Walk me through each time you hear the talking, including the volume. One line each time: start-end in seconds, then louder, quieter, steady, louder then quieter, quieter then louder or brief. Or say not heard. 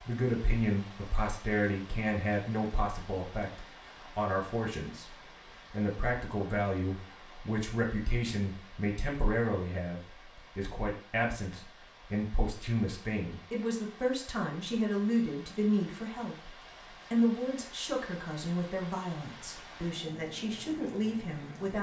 0.1-21.7 steady.